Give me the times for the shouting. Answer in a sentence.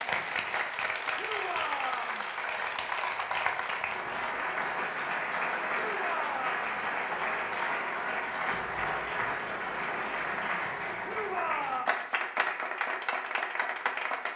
The shouting can be heard from 1.1 to 2.2 s, from 5.8 to 6.8 s and from 11.0 to 11.9 s.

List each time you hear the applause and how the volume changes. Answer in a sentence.
The applause can be heard from 0.0 to 14.3 s, at a steady volume.